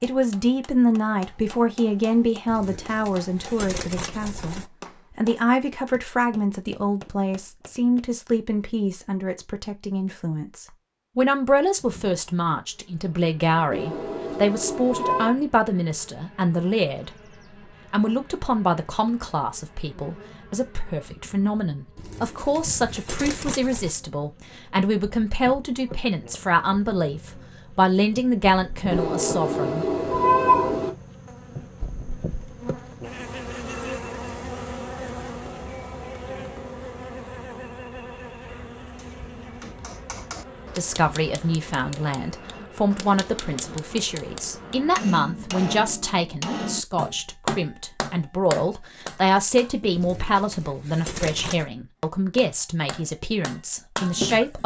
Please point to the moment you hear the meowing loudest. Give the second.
30 s.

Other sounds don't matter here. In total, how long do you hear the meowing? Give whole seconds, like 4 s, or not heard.
4 s.